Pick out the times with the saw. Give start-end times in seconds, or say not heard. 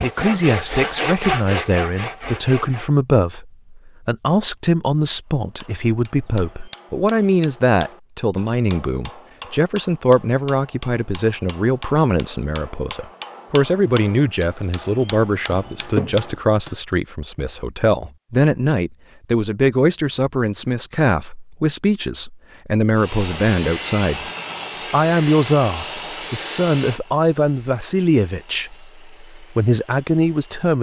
0.0-2.9, 22.9-30.7.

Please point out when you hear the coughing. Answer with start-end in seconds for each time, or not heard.
15.4-16.4.